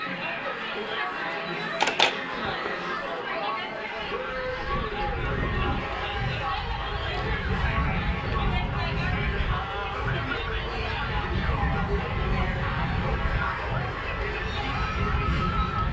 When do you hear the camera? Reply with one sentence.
The camera can be heard from 1.6 to 3.0 s.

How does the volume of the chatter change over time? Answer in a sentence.
The loudness of the chatter stays about the same.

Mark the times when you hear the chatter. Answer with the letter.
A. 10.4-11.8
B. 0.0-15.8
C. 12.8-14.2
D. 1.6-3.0
B.